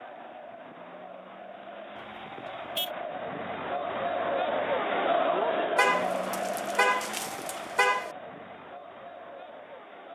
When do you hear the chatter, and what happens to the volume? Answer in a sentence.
You can hear the chatter from 0.0 to 10.1 s, getting louder then quieter.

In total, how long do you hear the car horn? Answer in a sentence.
You can hear the car horn for 3 seconds altogether.